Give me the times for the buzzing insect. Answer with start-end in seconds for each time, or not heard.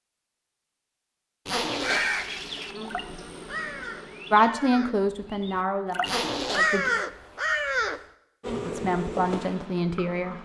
1.9-4.5, 8.4-10.3.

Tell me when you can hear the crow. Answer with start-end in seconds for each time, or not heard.
1.6-8.0.